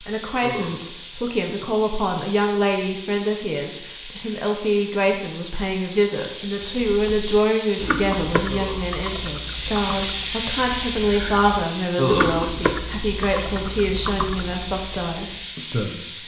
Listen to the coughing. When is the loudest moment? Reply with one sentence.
The loudest moment of the coughing is at 12 seconds.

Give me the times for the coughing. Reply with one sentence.
The coughing can be heard from 0.4 to 0.8 s, from 8.4 to 8.8 s and from 11.9 to 12.3 s.